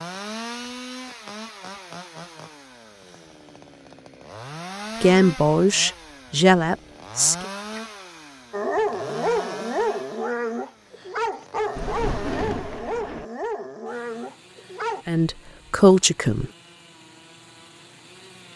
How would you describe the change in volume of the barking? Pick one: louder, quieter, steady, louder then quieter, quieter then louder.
quieter.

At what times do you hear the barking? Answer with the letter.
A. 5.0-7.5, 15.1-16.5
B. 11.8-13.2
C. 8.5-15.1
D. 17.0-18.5
C.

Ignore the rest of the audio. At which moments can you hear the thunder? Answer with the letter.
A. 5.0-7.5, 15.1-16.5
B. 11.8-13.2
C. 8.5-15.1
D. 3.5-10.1
B.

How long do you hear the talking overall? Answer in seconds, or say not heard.
4 s.